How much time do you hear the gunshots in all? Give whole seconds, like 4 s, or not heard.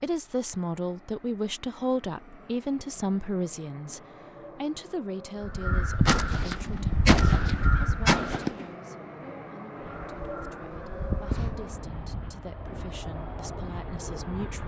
3 s.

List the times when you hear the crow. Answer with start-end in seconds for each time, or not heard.
5.4-8.4, 9.8-11.8.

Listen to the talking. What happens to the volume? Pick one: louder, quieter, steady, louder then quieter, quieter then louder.
quieter then louder.